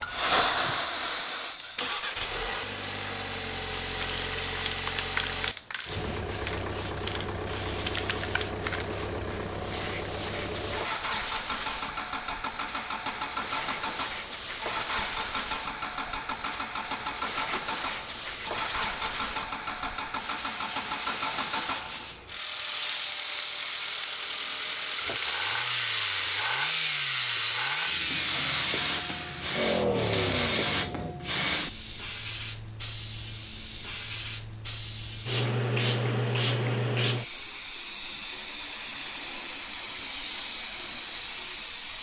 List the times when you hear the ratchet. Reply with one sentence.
The ratchet can't be heard in this clip.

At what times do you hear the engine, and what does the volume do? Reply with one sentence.
The engine can be heard from 0.0 to 31.1 s, getting louder.